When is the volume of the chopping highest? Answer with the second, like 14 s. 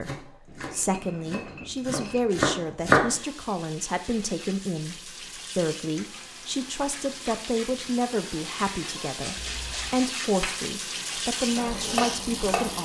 3 s.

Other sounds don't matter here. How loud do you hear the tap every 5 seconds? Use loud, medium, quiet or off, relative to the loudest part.
medium, medium, loud.